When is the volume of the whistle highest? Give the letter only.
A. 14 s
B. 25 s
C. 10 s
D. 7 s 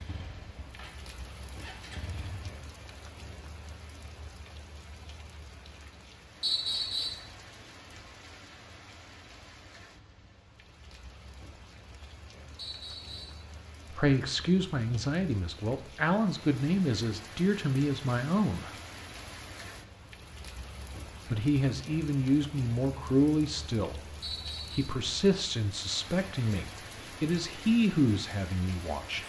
D.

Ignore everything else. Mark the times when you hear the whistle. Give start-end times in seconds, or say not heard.
6.4-7.2, 12.6-13.4, 24.2-24.9.